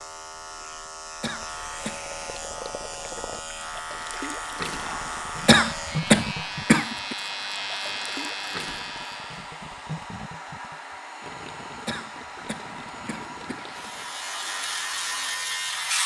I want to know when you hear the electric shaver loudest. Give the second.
16 s.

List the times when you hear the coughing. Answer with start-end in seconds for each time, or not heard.
1.2-2.0, 5.5-7.2, 11.8-13.7.